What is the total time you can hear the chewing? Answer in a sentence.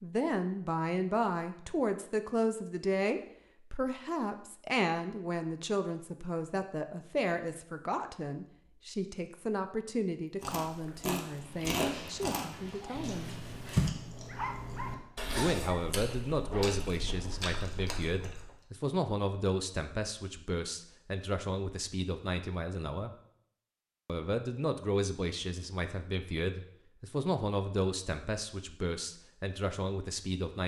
You can hear the chewing for 8 seconds altogether.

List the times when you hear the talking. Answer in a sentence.
The talking can be heard from 0.0 to 13.3 s, from 15.3 to 23.1 s and from 24.1 to 30.6 s.